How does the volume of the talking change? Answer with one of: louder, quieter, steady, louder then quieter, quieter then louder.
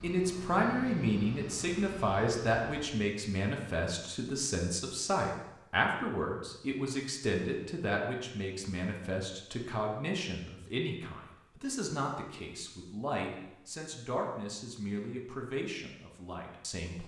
quieter.